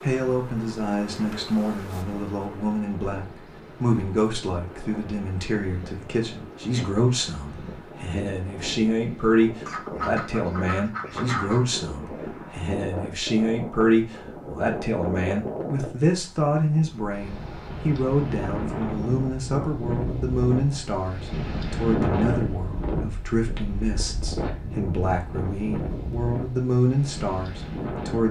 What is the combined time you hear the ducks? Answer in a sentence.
The ducks can be heard for 2 seconds in total.